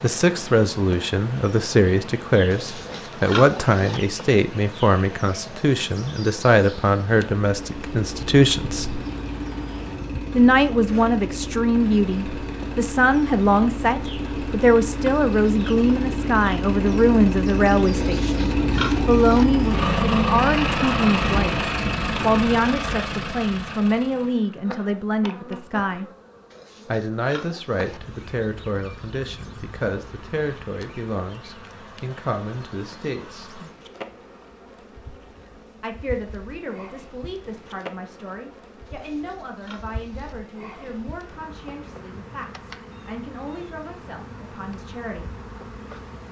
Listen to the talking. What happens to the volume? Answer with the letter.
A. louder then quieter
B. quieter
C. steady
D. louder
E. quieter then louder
B.